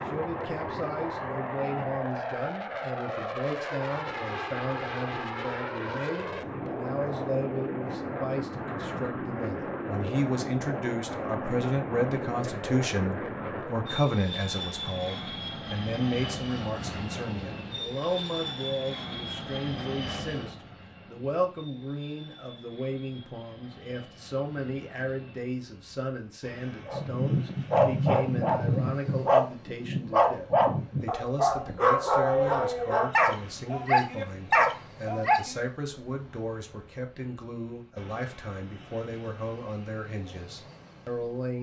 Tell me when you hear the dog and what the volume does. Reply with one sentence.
The dog can be heard from 26.9 to 35.6 s, at a steady volume.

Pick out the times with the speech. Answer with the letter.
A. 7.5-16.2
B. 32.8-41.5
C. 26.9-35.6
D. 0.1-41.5
D.